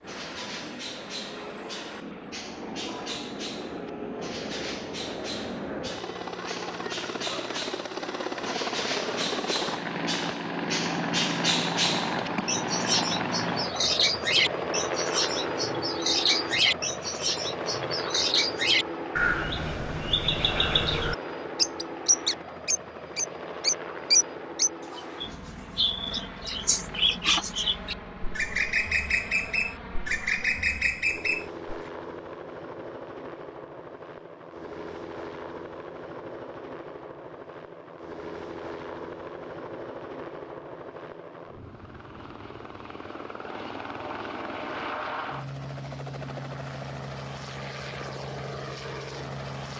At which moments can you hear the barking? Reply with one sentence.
You can't hear the barking here.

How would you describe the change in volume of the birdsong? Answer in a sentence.
The volume of the birdsong goes up.